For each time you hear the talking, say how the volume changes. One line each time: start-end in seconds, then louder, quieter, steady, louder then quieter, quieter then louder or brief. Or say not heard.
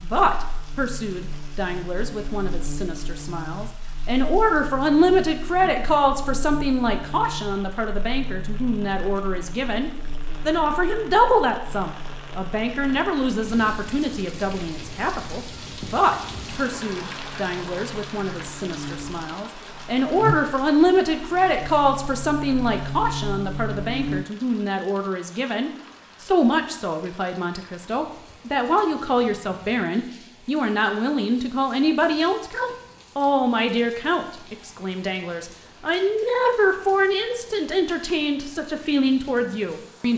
0.0-40.1 steady.